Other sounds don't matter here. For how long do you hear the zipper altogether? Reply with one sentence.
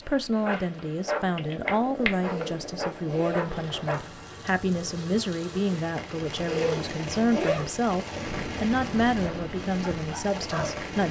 The zipper can be heard for 3 seconds in total.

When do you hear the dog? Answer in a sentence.
The dog can be heard from 0.0 to 4.2 s and from 9.2 to 11.0 s.